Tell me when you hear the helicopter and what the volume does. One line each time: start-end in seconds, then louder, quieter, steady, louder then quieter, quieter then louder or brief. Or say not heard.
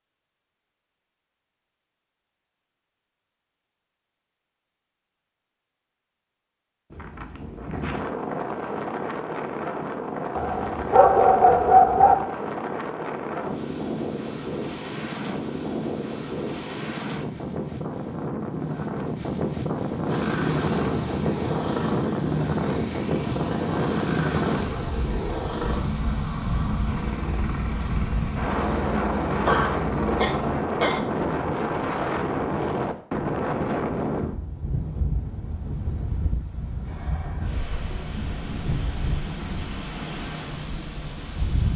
20.1-30.6 steady.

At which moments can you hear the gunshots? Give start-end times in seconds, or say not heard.
not heard.